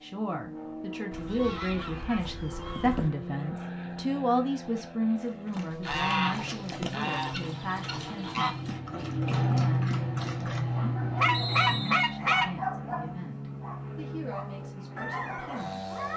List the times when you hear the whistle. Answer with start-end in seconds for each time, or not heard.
11.3-12.2.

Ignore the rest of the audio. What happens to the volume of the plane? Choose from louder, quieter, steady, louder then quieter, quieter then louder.
louder then quieter.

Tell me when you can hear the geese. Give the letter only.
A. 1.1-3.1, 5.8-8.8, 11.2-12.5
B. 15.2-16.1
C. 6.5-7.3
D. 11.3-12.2
A.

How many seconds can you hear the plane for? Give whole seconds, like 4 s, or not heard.
16 s.